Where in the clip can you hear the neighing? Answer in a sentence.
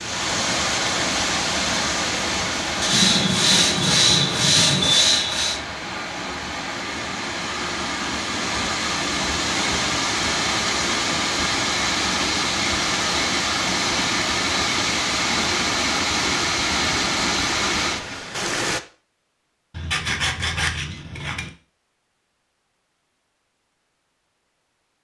You can't hear the neighing here.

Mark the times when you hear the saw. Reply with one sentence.
The saw can be heard from 2.8 to 5.6 s and from 19.8 to 21.5 s.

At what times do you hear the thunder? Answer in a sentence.
The thunder can be heard from 2.9 to 5.0 s.